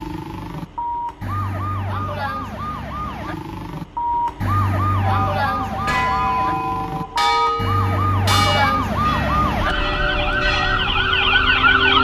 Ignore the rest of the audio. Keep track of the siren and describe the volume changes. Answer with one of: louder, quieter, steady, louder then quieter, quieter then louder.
louder.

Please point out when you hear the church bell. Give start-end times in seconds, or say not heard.
5.0-10.8.